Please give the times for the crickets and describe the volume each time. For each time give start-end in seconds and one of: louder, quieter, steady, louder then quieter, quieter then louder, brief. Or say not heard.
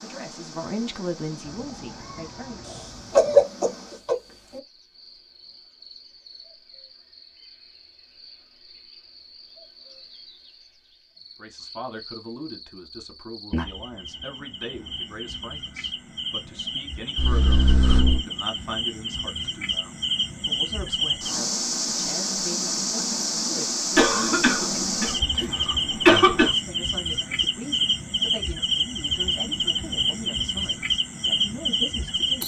0.0-32.4 louder.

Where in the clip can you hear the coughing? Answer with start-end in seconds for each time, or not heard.
2.6-4.6, 17.1-18.2, 23.9-26.5.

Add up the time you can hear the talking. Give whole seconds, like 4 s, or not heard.
24 s.